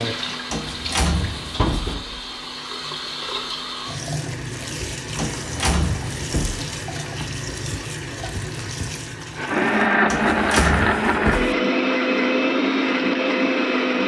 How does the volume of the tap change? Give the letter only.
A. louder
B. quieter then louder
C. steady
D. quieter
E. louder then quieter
C.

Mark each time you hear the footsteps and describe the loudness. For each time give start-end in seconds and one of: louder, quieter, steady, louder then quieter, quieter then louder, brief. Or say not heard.
not heard.